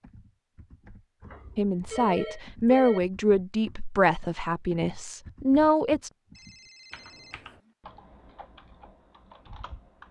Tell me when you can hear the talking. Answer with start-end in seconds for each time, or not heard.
1.6-6.1.